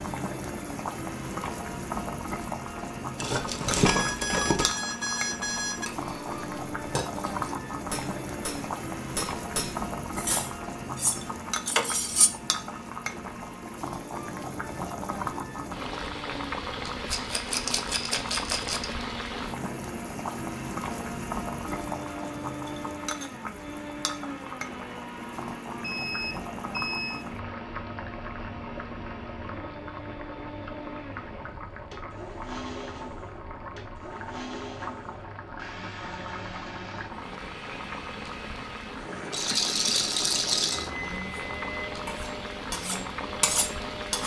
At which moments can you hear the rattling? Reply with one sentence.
You can hear the rattling from 3.1 to 4.8 s, from 17.1 to 18.9 s and from 39.3 to 40.9 s.